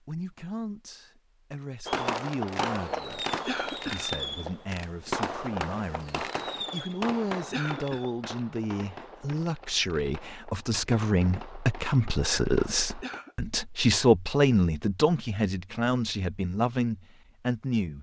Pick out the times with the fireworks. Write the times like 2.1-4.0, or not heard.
1.9-13.2.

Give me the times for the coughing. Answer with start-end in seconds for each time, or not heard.
3.5-4.1, 7.5-8.1, 13.0-13.4.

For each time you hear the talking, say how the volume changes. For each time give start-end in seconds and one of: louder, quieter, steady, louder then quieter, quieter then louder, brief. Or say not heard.
0.0-17.9 louder.